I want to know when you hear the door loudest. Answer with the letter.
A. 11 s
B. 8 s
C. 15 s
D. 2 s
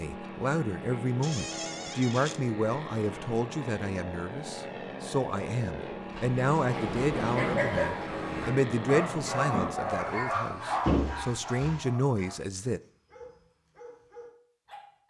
A.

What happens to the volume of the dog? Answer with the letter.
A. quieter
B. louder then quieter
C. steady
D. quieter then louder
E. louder
A.